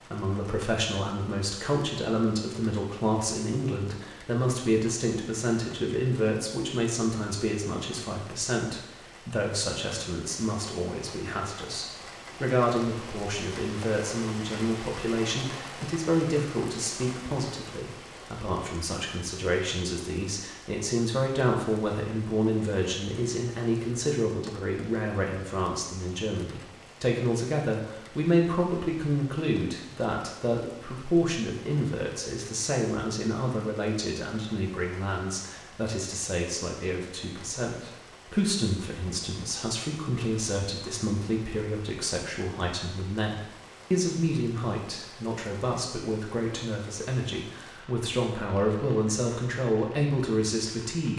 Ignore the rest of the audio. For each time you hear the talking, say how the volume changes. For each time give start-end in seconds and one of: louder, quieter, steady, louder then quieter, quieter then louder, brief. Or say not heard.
0.0-51.1 steady.